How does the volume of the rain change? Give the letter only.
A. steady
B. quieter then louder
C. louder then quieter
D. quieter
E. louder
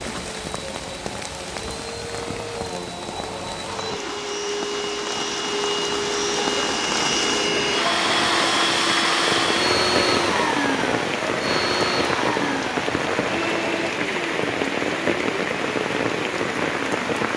E.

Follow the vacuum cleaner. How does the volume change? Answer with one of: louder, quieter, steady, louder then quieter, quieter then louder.
louder then quieter.